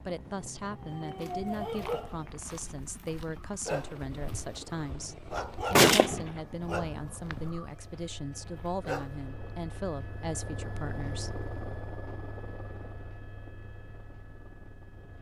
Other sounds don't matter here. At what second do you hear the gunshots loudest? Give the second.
6 s.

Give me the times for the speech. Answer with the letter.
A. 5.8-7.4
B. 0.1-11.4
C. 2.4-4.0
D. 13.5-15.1
B.